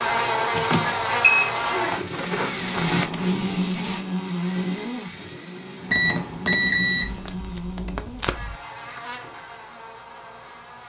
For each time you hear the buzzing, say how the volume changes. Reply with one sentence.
The buzzing can be heard from 0.0 to 10.8 s, getting quieter.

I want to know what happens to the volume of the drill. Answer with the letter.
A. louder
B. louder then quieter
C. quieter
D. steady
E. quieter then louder
C.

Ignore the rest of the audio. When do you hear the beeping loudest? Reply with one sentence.
The volume of the beeping peaks at 7 seconds.